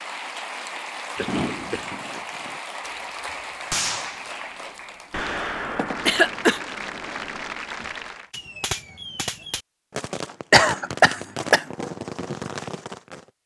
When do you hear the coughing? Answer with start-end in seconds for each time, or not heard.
1.1-1.9, 6.0-6.6, 10.5-11.7.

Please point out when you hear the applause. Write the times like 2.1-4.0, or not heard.
0.0-8.3.